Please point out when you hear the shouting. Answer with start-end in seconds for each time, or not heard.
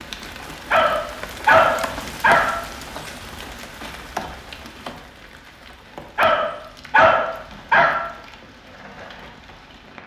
not heard.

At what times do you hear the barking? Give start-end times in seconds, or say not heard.
0.7-2.6, 6.2-8.0.